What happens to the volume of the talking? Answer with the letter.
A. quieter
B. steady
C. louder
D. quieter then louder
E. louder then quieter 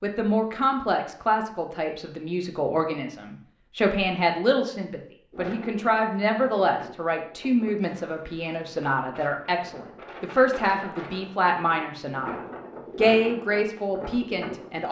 B.